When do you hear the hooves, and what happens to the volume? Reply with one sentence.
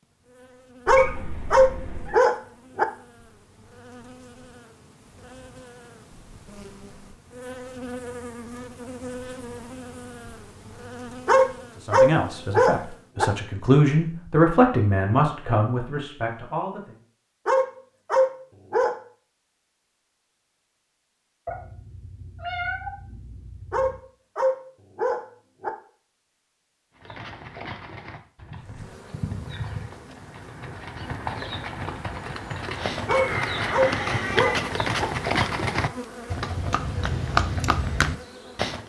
You can hear the hooves from 26.9 to 38.8 s, getting louder.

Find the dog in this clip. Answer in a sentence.
The dog can be heard from 0.8 to 2.9 s, from 11.2 to 13.2 s, from 17.4 to 18.9 s, from 23.7 to 25.7 s and from 33.0 to 35.0 s.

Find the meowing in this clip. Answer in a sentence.
The meowing can be heard from 0.8 to 2.1 s, from 21.4 to 24.0 s and from 33.0 to 34.7 s.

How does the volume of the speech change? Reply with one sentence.
The loudness of the speech goes up, then down.